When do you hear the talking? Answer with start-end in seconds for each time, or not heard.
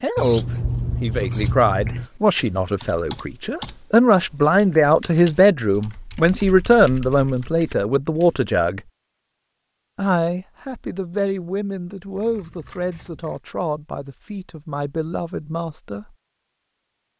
0.0-8.8, 9.9-16.1.